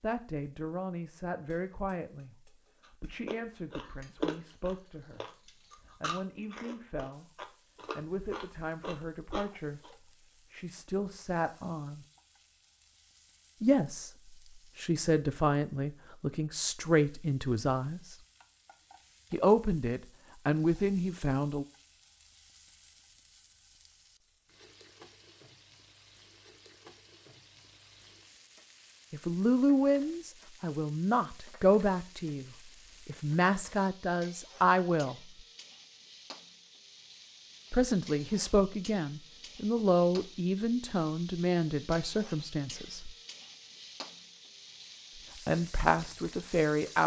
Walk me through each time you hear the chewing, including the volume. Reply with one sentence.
You can hear the chewing from 3.2 to 9.9 s, getting quieter then louder.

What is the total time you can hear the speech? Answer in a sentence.
You can hear the speech for 32 seconds altogether.